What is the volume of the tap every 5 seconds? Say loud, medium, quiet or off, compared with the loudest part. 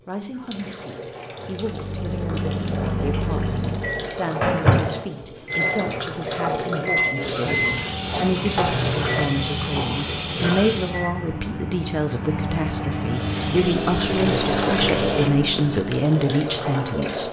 medium, loud, loud, loud.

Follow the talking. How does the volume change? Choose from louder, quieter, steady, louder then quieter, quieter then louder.
louder.